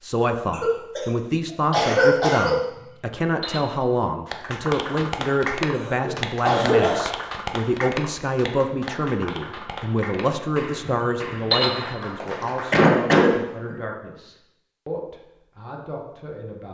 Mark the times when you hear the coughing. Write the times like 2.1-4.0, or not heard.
0.5-1.1, 1.7-2.5, 5.8-7.0, 12.3-13.8.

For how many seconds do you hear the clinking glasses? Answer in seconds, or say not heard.
2 s.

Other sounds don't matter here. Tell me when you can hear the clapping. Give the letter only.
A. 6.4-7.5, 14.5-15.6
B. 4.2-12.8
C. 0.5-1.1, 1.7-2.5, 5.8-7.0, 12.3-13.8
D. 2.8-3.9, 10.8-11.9
B.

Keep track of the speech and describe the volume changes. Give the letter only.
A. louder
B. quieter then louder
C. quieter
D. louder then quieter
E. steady
C.